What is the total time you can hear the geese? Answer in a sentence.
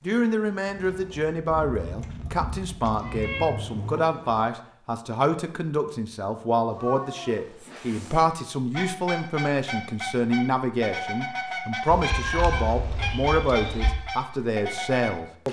The geese can be heard for 7 seconds in total.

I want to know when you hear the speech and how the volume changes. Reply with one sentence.
The speech can be heard from 0.0 to 15.4 s, at a steady volume.